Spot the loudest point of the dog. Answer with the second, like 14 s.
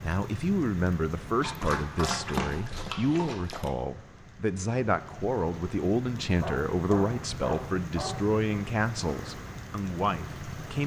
2 s.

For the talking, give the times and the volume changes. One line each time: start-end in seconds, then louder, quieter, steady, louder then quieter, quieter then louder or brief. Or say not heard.
0.0-10.8 steady.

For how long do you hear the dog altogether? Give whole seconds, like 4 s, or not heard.
4 s.